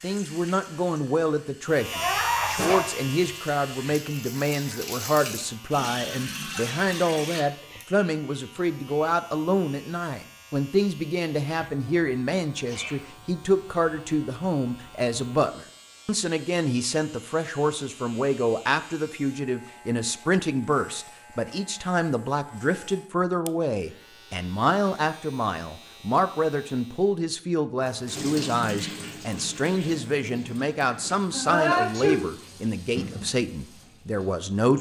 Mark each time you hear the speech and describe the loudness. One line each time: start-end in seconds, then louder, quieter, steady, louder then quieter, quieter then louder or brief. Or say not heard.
0.0-34.7 steady.